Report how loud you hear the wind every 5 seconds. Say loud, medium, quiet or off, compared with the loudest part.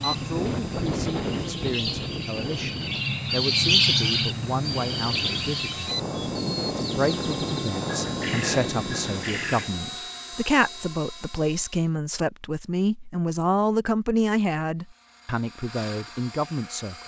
loud, loud, off, off.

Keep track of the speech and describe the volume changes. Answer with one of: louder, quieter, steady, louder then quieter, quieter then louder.
louder.